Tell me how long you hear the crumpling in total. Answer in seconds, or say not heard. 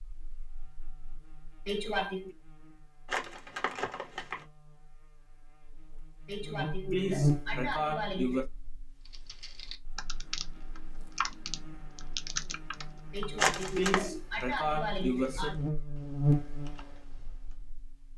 2 s.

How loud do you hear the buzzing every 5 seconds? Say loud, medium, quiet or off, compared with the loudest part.
quiet, loud, quiet, loud.